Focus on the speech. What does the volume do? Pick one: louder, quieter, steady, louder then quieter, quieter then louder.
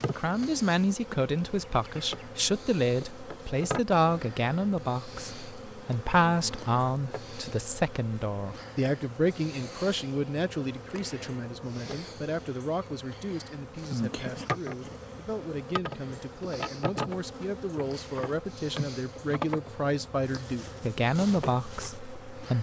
quieter then louder.